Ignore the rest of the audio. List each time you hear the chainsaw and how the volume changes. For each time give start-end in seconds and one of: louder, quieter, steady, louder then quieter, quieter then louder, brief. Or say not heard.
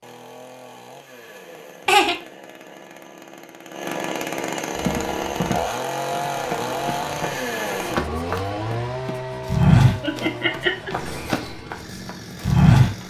0.0-13.0 louder then quieter.